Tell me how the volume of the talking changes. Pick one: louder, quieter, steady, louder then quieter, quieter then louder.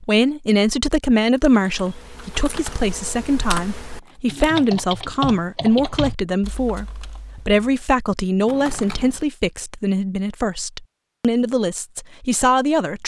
steady.